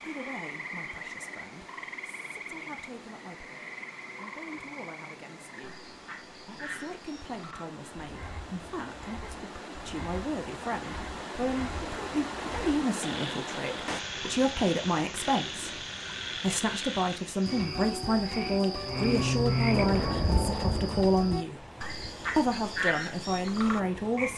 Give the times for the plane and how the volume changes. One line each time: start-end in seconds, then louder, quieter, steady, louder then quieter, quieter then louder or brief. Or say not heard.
18.9-24.3 quieter.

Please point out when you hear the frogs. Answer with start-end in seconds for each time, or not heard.
0.0-24.3.